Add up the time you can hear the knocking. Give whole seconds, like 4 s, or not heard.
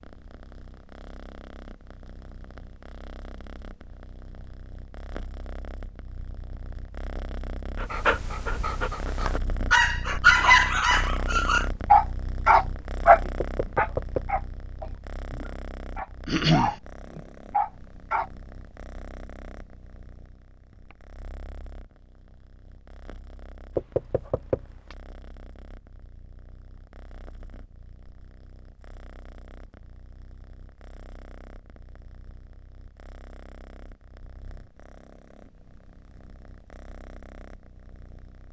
2 s.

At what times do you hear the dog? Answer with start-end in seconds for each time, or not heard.
7.8-18.2.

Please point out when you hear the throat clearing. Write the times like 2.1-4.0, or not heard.
16.2-16.8.